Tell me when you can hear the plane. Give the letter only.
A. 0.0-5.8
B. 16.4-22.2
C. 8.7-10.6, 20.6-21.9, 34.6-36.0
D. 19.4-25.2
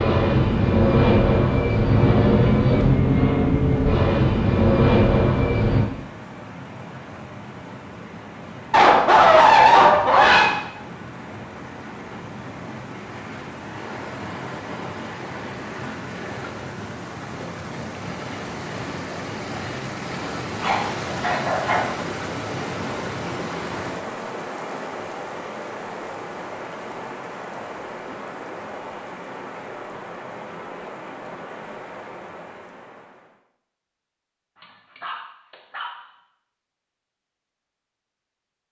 A.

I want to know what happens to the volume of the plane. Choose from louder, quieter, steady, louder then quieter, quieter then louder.
steady.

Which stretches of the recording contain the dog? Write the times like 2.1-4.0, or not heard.
8.7-10.6, 20.6-21.9, 34.6-36.0.